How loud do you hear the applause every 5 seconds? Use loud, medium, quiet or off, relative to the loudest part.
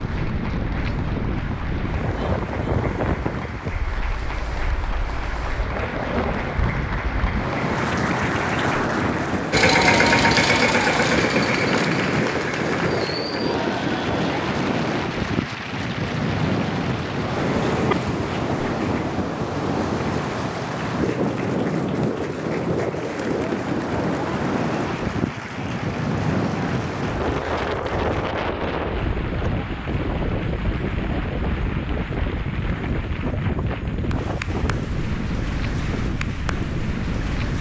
medium, loud, loud, medium, medium, medium, medium, medium.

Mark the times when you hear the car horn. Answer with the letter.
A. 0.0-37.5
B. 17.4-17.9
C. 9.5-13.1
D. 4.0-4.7
B.